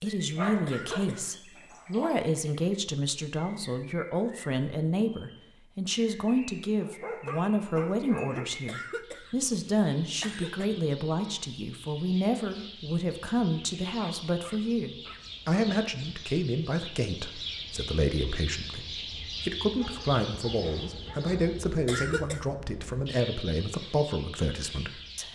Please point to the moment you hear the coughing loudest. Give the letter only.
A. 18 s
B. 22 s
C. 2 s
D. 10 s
B.